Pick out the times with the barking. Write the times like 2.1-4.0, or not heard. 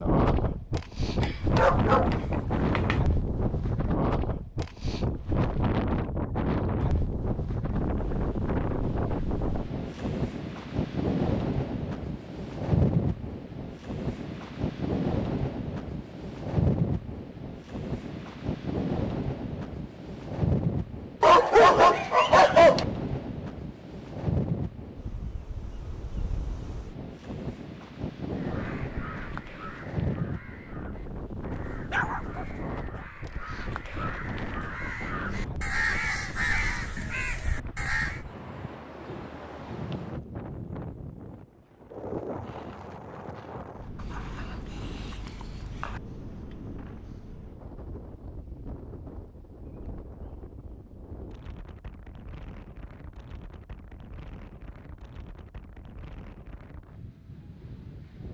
1.2-3.0, 21.2-22.9, 31.5-32.6, 44.0-46.0.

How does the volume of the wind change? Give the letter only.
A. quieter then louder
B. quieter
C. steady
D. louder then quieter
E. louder
B.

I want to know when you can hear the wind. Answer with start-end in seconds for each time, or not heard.
0.0-58.2.